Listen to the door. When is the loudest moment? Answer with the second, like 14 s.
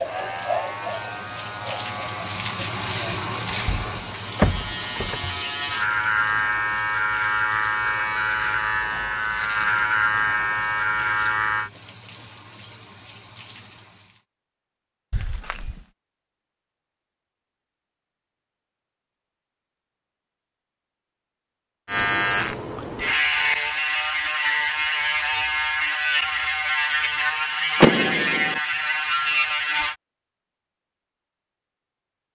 28 s.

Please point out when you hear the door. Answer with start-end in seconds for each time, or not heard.
3.6-5.2, 15.1-15.8, 27.8-28.6.